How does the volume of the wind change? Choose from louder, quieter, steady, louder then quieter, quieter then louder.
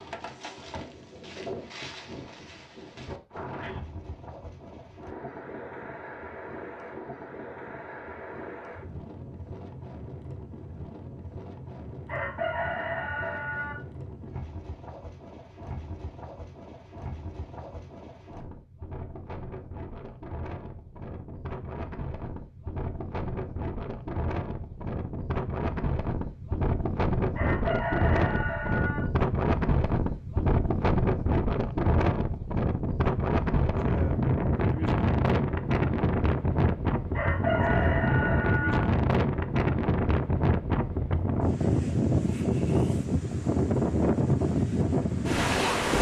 louder.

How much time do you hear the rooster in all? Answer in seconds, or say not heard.
5 s.